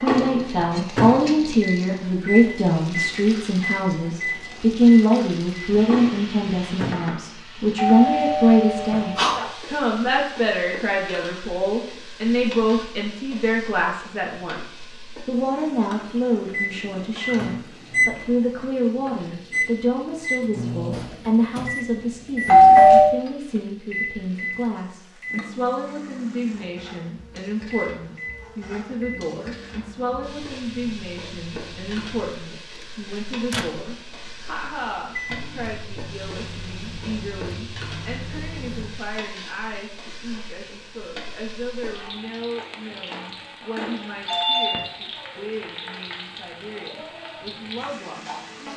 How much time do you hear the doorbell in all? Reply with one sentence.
The doorbell can be heard for 3 seconds in total.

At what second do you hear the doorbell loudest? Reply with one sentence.
The volume of the doorbell peaks at 23 seconds.